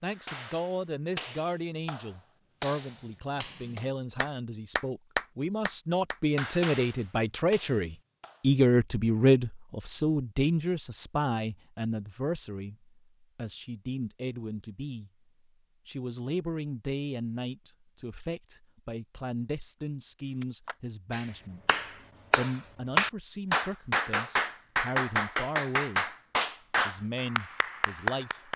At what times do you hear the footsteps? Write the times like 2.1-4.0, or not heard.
not heard.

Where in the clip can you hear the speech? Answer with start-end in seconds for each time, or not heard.
0.0-15.1, 15.8-21.6, 22.4-26.1, 26.9-28.5.